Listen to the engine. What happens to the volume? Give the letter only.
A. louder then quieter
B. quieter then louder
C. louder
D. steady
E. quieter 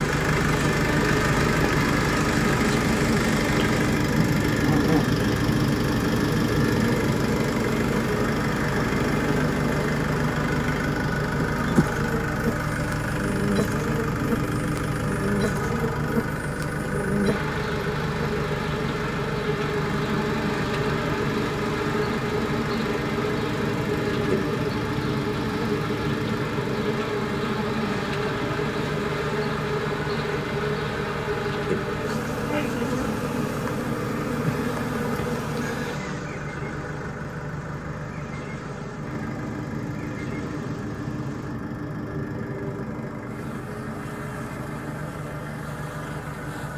E.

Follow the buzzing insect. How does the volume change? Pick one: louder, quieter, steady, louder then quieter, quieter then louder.
quieter.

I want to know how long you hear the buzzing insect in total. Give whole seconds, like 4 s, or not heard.
47 s.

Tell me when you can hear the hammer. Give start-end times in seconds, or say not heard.
not heard.